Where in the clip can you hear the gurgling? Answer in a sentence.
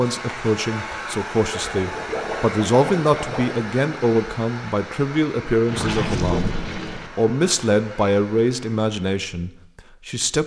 You can hear the gurgling from 1.5 to 3.6 s and from 5.7 to 7.1 s.